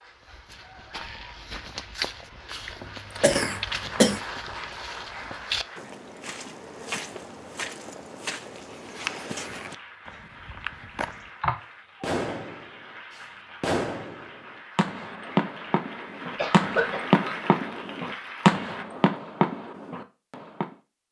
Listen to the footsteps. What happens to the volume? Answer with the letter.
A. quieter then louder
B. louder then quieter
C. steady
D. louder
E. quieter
C.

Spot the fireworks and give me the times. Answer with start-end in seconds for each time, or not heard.
12.0-20.8.